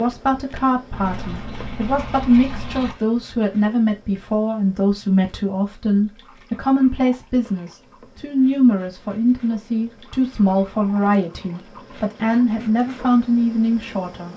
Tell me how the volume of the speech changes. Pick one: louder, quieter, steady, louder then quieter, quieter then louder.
steady.